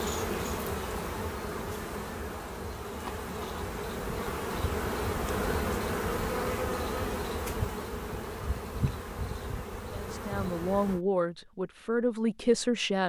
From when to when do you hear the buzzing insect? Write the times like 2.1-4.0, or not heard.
0.0-11.0.